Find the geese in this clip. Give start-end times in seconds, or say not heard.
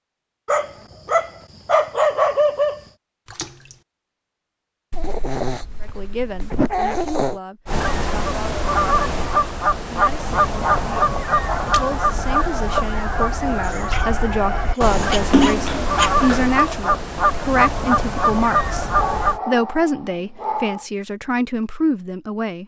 7.7-19.4.